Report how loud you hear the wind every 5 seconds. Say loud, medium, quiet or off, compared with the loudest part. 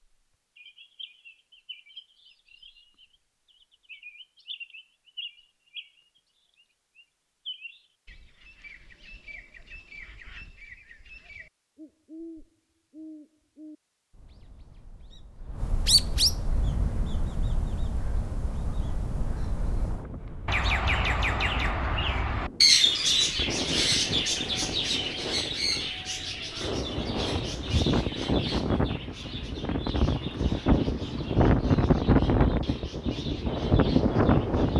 off, off, off, quiet, quiet, medium, loud.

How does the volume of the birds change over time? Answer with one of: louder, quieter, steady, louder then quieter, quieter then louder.
louder then quieter.